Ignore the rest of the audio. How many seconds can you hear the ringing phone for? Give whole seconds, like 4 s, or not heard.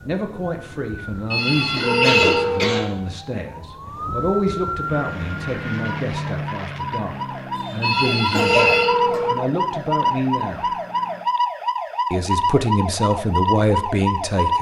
3 s.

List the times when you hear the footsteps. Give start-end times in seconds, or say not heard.
not heard.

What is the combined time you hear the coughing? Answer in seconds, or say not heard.
3 s.